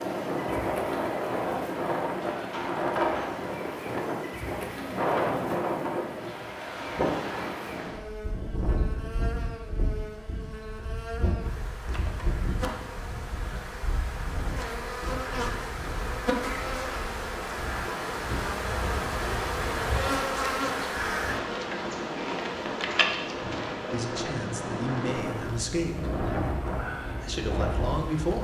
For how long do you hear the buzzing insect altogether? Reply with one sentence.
The buzzing insect can be heard for 28 seconds in total.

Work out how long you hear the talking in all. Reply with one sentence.
The talking can be heard for 3 seconds in total.